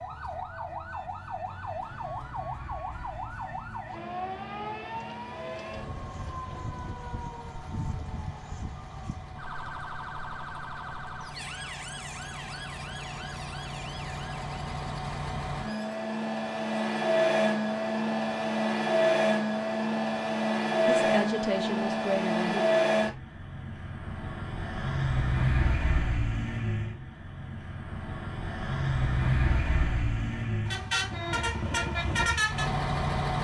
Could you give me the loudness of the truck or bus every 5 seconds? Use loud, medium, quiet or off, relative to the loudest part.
quiet, quiet, quiet, loud, loud, loud, loud.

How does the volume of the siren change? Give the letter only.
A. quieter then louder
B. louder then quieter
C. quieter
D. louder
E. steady
C.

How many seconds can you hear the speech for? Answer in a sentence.
You can hear the speech for 2 seconds altogether.